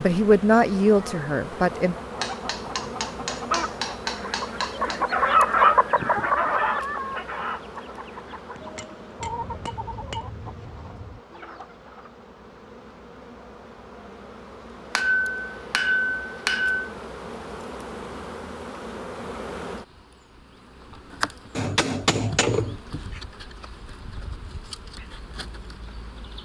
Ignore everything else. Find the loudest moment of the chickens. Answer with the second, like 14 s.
6 s.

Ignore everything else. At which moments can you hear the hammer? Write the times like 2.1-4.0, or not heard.
2.2-5.0, 8.6-10.2, 14.9-16.9, 21.6-23.2.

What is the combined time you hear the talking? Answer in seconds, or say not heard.
2 s.